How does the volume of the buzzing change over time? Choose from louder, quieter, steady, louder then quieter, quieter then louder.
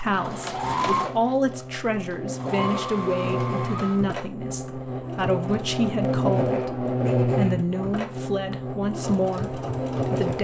louder then quieter.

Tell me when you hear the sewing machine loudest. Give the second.
1 s.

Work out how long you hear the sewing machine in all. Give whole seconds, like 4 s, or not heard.
10 s.